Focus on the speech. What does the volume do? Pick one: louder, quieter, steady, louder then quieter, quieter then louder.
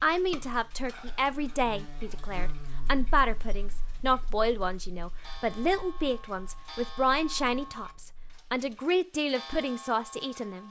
steady.